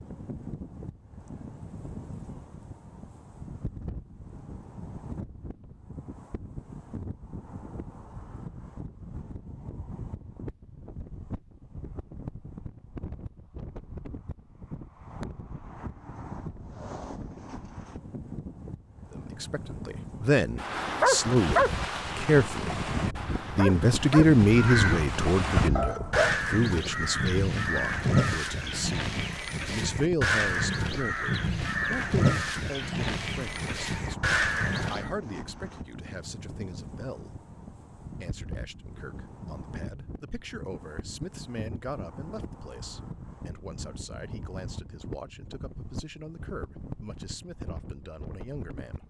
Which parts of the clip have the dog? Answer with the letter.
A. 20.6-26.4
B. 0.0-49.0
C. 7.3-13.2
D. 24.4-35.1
A.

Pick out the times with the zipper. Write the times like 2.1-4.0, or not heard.
not heard.